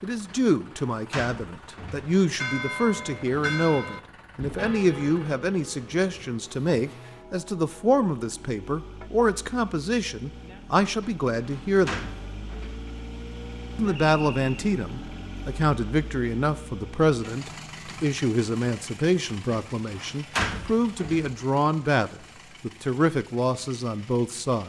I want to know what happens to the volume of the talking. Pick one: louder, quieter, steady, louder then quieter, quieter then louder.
steady.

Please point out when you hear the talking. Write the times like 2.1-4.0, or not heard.
0.0-12.1, 13.8-24.6.